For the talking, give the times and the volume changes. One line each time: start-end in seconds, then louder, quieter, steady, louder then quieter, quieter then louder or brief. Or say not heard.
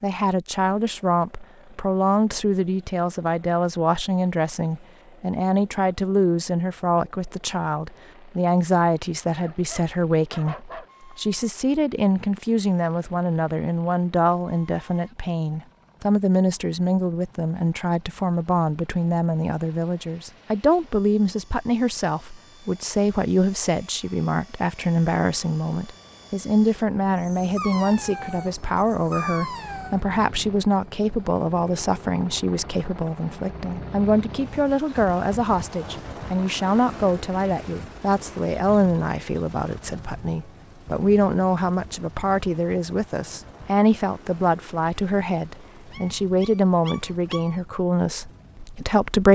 0.0-49.3 steady.